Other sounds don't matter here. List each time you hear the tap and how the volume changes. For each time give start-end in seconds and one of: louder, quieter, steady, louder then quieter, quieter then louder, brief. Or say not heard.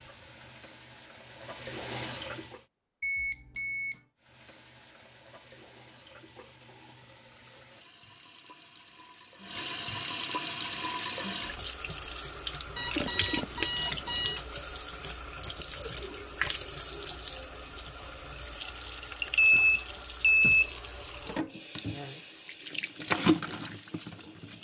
0.0-2.6 brief
4.2-24.5 louder.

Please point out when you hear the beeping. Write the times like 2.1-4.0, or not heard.
3.0-4.0, 12.8-14.4, 19.1-20.7.